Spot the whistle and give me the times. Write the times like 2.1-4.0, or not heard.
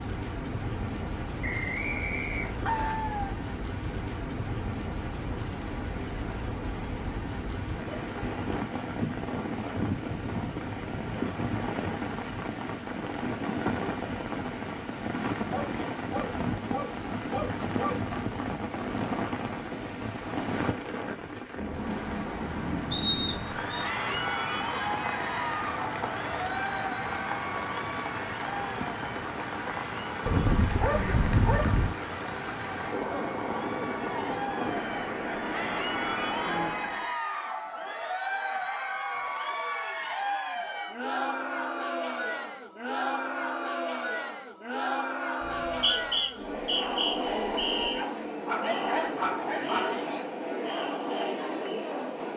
1.4-3.0, 22.9-23.9, 45.4-48.0.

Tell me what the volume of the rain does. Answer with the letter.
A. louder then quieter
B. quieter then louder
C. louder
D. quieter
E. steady
E.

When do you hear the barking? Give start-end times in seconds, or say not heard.
2.6-3.4, 15.5-18.0, 30.2-31.9, 48.0-50.1.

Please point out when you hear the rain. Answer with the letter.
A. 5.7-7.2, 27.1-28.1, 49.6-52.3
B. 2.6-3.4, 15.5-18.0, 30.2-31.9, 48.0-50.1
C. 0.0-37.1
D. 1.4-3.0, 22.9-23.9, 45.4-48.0
C.